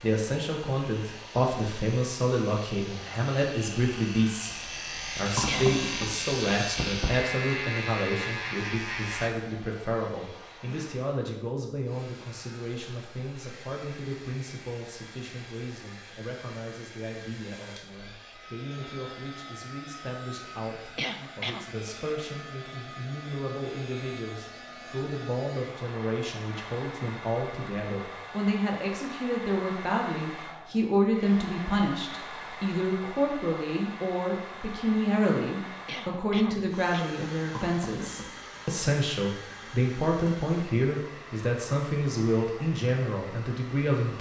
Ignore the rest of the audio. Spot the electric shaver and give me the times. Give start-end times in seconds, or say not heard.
0.0-9.3.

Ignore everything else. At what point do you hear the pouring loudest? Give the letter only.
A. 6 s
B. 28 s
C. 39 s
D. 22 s
A.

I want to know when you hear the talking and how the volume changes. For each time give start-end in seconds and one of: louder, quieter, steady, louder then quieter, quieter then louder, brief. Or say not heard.
0.0-44.1 quieter then louder.